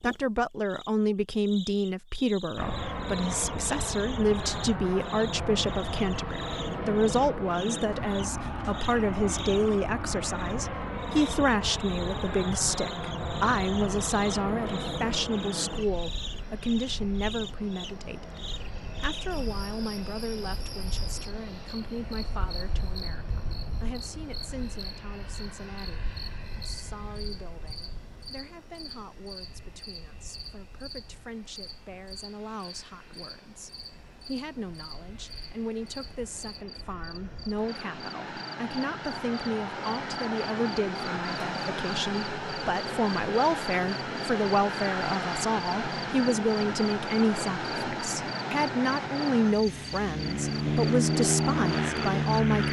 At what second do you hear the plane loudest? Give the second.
51 s.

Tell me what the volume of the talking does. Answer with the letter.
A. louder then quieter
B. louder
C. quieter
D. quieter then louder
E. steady
D.